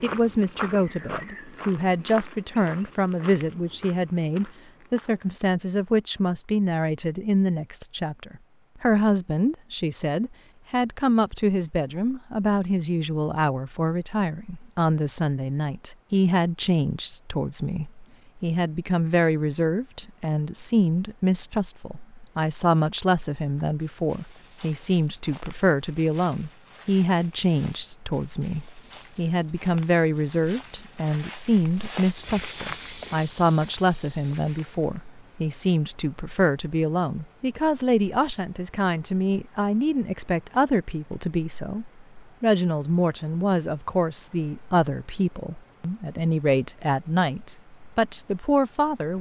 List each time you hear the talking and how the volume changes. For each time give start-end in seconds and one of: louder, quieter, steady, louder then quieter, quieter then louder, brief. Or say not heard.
0.0-49.1 steady.